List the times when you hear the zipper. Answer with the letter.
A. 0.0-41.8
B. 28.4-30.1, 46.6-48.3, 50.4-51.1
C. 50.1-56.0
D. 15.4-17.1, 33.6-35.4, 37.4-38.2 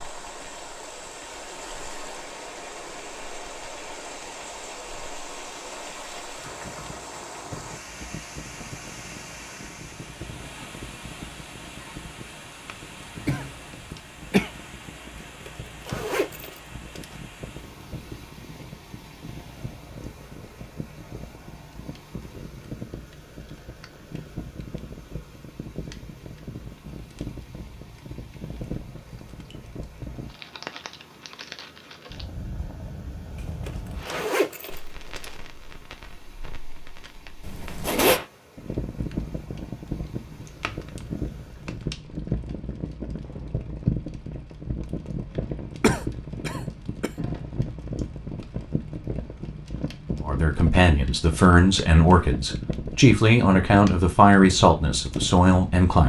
D.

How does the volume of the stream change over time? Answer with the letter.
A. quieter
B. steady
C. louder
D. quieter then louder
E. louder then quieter
A.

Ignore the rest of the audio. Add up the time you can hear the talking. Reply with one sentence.
You can hear the talking for 6 seconds altogether.